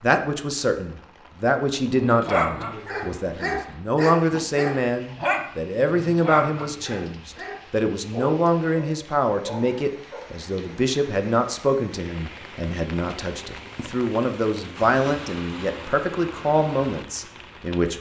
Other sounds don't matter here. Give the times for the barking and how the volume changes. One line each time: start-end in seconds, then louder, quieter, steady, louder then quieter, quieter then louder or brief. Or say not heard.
1.9-10.3 quieter.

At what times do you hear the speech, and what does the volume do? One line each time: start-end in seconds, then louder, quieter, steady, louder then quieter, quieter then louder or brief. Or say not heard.
0.0-17.9 steady.